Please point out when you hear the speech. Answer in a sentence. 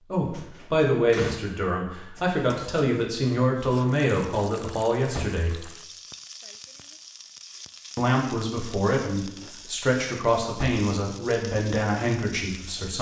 The speech can be heard from 0.1 to 5.7 s and from 8.0 to 12.9 s.